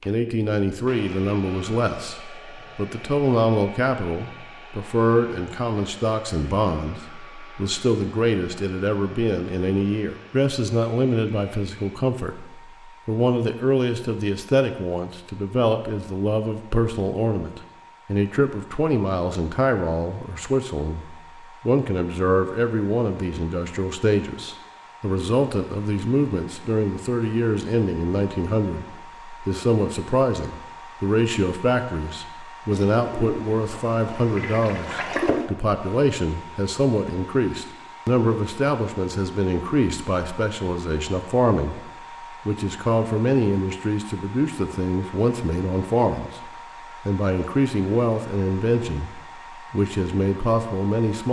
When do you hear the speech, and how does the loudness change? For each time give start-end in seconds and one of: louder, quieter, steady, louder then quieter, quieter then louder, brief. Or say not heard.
0.1-41.9 steady
42.5-51.2 steady.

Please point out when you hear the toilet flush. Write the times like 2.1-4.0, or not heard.
32.7-35.5.